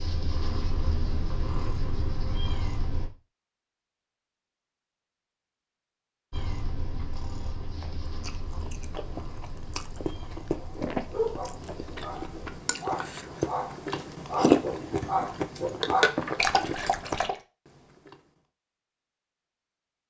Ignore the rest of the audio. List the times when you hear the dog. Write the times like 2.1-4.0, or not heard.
10.6-17.4.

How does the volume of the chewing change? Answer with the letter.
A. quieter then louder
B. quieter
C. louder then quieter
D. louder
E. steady
D.